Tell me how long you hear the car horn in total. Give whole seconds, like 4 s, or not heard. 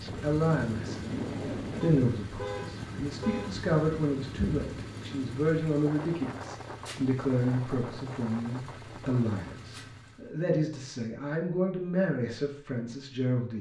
2 s.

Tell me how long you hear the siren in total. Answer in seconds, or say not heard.
not heard.